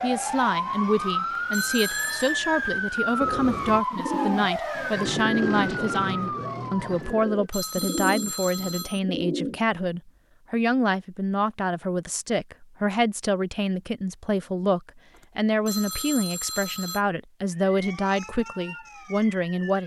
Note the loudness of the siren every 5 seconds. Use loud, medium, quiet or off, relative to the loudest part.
loud, loud, off, quiet.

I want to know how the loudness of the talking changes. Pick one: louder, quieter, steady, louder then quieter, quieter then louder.
steady.